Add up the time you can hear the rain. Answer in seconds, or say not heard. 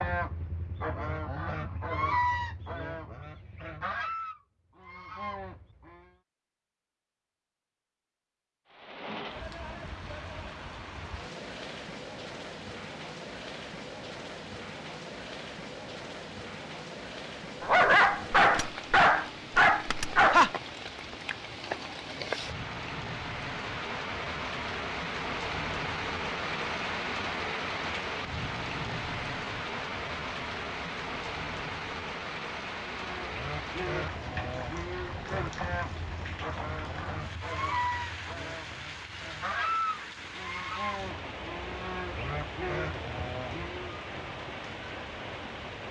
37 s.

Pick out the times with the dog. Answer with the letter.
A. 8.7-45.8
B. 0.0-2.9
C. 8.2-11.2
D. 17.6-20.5
D.